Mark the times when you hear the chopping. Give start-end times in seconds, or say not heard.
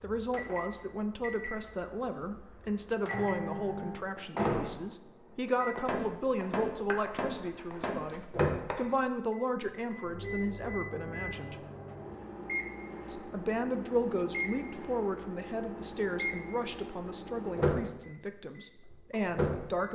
6.8-8.9.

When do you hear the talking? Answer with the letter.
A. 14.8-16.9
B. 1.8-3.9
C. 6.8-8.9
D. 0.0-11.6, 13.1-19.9
D.